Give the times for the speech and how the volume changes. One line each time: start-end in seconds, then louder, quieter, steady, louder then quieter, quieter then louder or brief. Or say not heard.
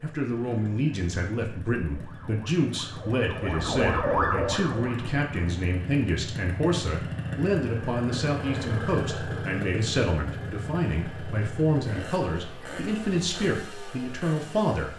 0.0-14.9 steady.